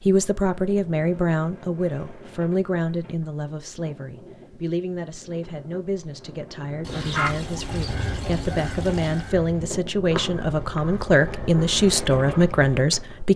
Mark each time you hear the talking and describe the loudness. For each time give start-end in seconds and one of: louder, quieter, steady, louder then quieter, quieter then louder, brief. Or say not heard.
0.0-13.3 quieter then louder.